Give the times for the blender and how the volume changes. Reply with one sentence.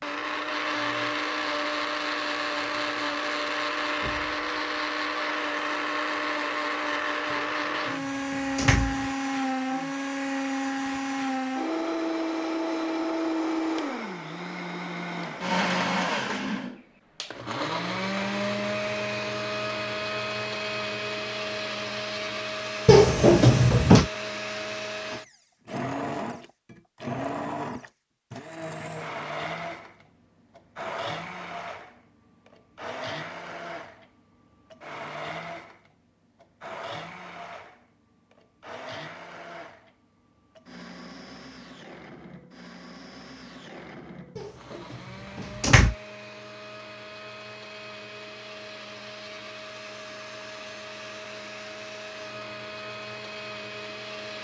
You can hear the blender from 0.0 to 54.4 s, getting quieter.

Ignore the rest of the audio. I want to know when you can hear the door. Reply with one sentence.
The door can be heard from 7.3 to 9.1 s, from 22.9 to 24.1 s and from 44.4 to 46.0 s.